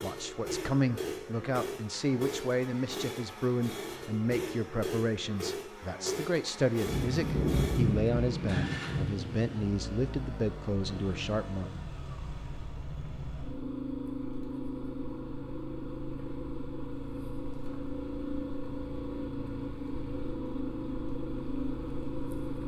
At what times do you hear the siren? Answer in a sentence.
You can't hear the siren here.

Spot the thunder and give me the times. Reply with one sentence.
You can hear the thunder from 6.8 to 9.6 s.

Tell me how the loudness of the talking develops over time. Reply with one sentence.
The volume of the talking stays about the same.